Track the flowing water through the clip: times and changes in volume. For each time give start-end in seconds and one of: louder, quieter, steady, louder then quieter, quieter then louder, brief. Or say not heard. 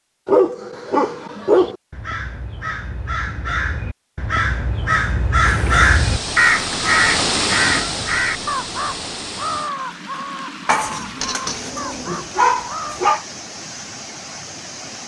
5.3-15.0 quieter.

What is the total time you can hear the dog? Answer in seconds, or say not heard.
4 s.